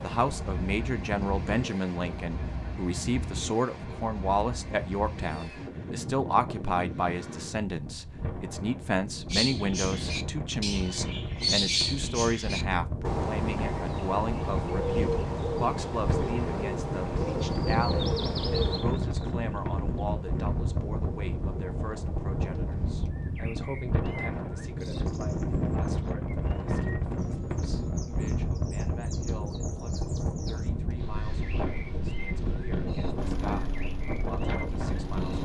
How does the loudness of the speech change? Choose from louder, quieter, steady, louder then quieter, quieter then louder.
quieter.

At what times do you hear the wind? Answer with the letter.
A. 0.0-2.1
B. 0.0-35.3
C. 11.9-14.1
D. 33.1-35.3
B.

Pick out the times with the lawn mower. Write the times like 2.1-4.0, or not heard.
33.1-35.3.